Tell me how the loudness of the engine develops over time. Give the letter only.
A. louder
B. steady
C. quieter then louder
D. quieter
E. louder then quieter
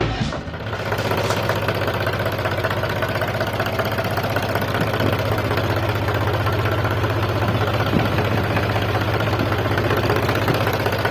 B.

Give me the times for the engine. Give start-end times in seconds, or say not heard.
0.2-11.0.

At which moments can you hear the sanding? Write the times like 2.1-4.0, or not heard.
0.0-1.6.